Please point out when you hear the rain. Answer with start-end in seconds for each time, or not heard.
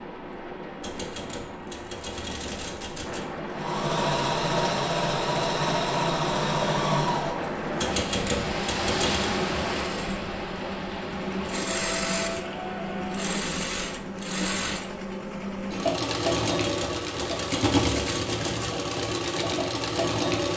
0.0-13.3.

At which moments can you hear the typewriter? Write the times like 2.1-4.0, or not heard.
0.8-3.4, 7.8-9.3, 16.3-18.8.